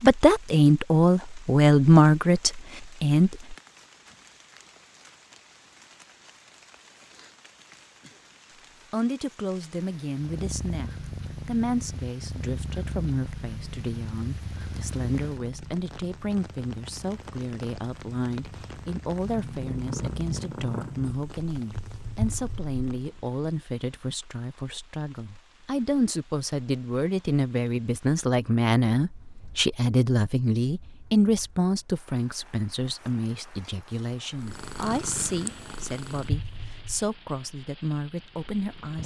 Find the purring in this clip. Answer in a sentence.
The purring can be heard from 10.2 to 23.2 s and from 34.4 to 39.0 s.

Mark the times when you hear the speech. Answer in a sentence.
You can hear the speech from 0.0 to 3.5 s and from 8.9 to 39.0 s.